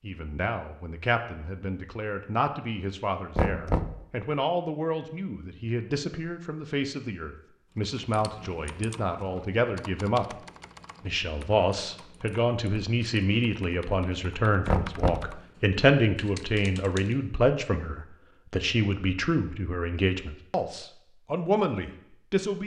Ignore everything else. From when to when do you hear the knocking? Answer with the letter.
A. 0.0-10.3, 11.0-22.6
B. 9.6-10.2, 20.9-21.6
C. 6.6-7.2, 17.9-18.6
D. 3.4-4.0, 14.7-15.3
D.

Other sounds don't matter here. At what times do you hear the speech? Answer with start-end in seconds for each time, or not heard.
0.0-10.3, 11.0-22.6.